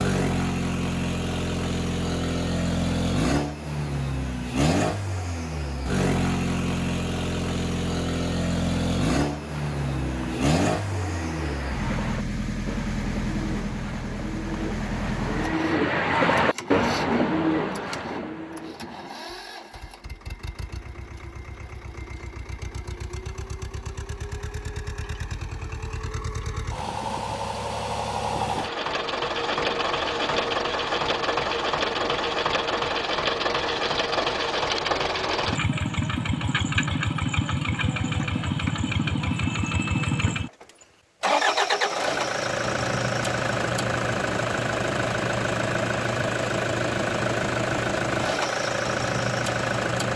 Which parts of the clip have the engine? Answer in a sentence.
The engine can be heard from 0.0 to 50.1 s.